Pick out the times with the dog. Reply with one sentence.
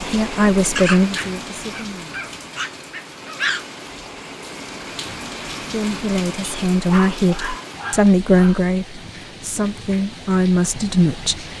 You can hear the dog from 0.8 to 3.6 s and from 6.8 to 8.7 s.